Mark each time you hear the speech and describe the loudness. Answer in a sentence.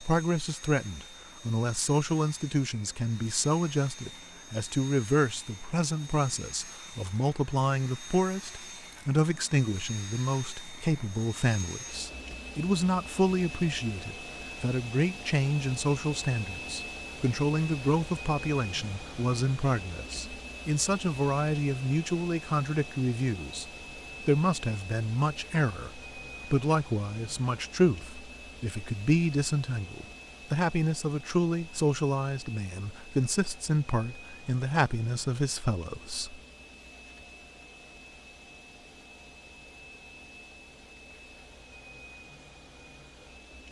You can hear the speech from 0.0 to 36.4 s, at a steady volume.